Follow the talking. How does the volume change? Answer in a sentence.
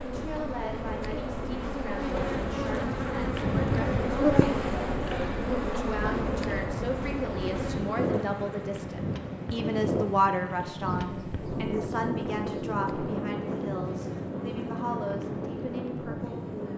The volume of the talking goes up, then down.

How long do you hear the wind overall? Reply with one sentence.
You can hear the wind for 17 seconds altogether.